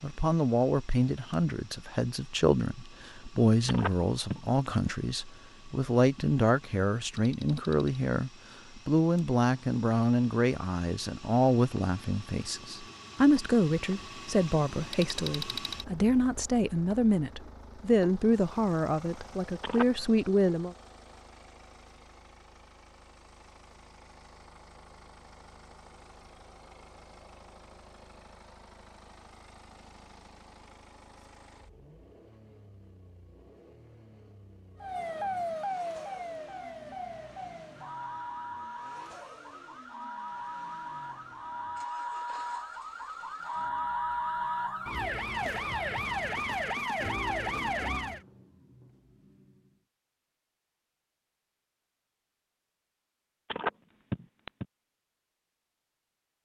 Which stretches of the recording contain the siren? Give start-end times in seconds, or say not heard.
34.8-48.2.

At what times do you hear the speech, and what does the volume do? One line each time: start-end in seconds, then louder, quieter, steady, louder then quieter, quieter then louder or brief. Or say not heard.
0.0-20.8 steady.